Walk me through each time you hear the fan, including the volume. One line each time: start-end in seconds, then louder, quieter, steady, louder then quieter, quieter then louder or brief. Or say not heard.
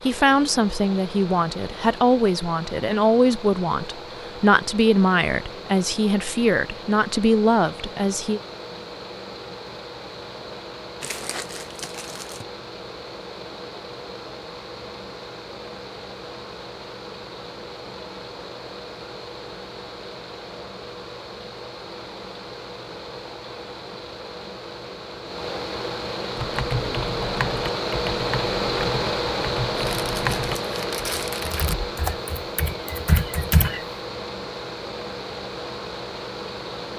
0.0-36.9 louder.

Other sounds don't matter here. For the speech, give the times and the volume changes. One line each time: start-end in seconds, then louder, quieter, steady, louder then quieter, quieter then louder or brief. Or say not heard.
0.1-8.4 steady.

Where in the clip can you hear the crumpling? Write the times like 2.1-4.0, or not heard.
11.0-12.4, 29.8-31.8.